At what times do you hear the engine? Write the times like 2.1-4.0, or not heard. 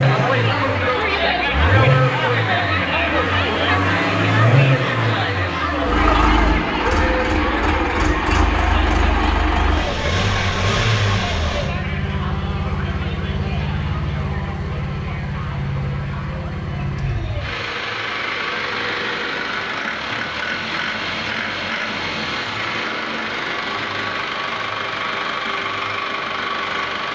0.0-27.0.